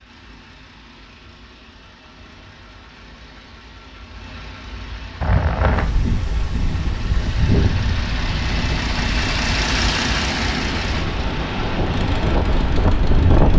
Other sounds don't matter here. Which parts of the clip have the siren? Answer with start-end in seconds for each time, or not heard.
not heard.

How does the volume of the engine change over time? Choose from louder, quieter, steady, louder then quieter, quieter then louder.
louder then quieter.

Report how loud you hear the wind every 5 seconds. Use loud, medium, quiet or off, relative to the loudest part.
off, loud, loud.